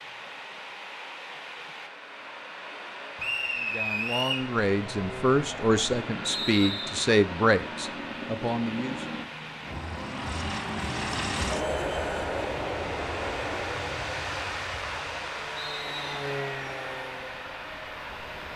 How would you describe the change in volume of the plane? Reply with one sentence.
The loudness of the plane goes up, then down.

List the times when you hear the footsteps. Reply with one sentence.
You can't hear the footsteps here.